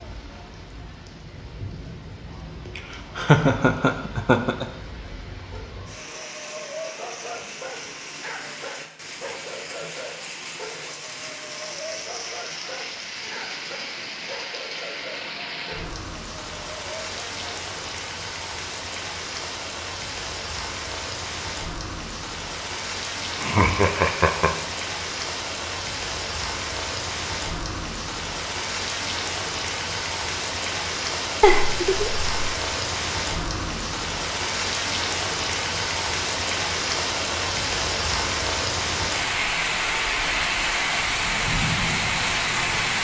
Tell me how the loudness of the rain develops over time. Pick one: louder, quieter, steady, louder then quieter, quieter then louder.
louder.